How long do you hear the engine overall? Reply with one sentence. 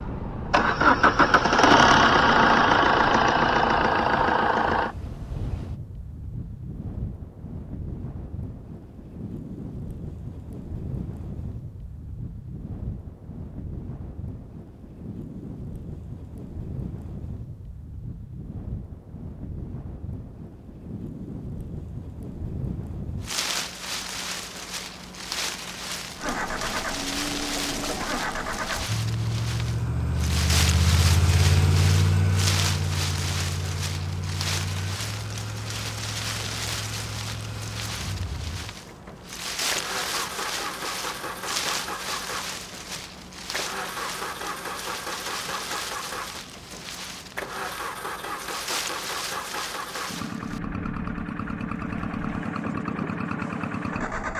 You can hear the engine for 33 seconds altogether.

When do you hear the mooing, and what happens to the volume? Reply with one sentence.
You can't hear the mooing here.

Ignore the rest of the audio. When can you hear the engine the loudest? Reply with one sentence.
The loudest moment of the engine is at 2 seconds.